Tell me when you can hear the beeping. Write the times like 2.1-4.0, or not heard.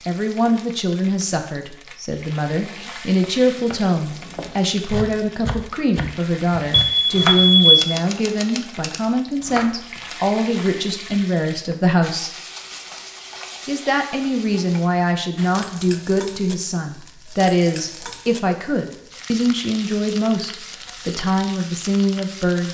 6.7-7.8.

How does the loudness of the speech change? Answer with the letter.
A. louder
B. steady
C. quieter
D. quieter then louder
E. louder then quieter
B.